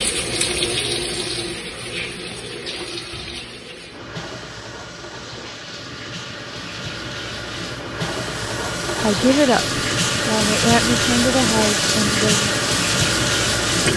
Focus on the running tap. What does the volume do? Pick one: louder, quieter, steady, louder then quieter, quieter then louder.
quieter then louder.